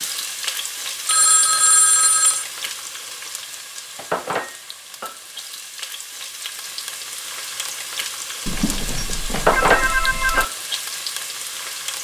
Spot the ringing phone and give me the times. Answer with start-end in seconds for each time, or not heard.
1.1-2.5, 8.4-10.4.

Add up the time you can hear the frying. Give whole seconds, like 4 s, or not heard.
12 s.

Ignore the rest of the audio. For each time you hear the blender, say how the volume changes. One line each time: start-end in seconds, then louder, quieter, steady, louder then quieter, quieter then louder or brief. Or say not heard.
not heard.